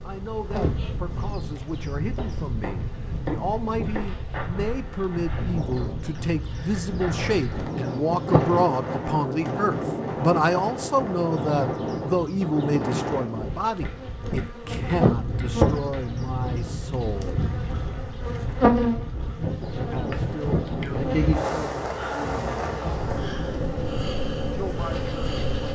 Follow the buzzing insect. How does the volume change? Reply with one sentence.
The volume of the buzzing insect goes up.